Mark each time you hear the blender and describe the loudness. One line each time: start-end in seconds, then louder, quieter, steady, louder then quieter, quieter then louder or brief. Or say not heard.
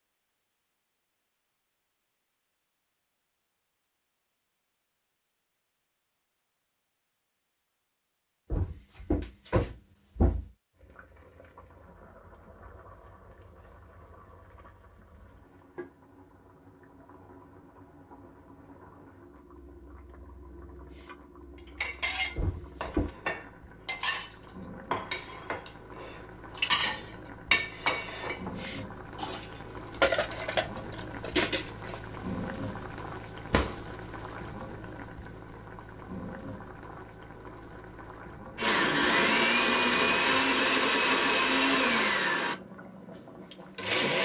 38.5-44.2 quieter.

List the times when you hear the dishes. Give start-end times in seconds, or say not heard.
21.8-32.0.